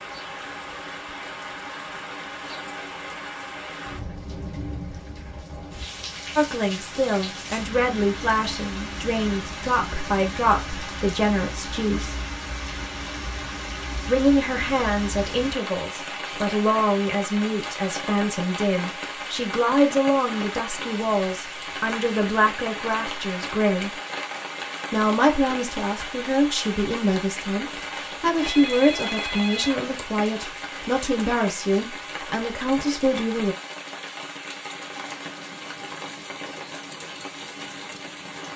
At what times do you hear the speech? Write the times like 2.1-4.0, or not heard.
6.3-12.2, 14.1-23.9, 24.9-33.5.